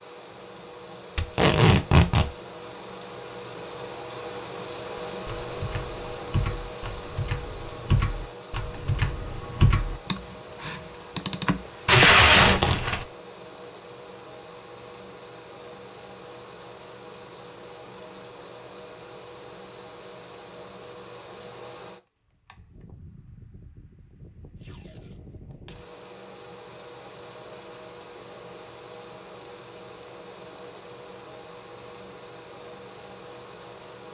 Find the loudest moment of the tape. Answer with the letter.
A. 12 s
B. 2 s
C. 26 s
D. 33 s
A.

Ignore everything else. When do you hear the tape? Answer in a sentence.
The tape can be heard from 1.1 to 2.3 s, from 11.8 to 13.1 s and from 24.6 to 25.8 s.